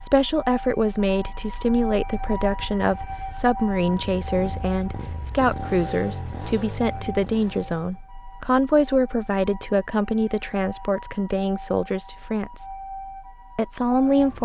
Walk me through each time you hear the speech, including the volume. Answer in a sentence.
The speech can be heard from 0.0 to 12.7 s, at a steady volume; and briefly from 13.6 to 14.3 s.